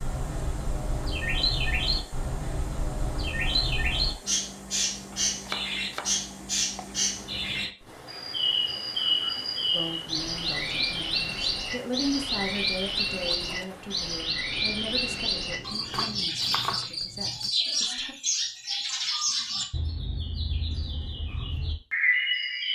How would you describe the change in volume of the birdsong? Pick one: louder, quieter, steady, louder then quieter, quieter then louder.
steady.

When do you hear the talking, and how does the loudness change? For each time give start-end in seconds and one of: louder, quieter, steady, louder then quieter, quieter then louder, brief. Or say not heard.
9.7-18.1 louder then quieter.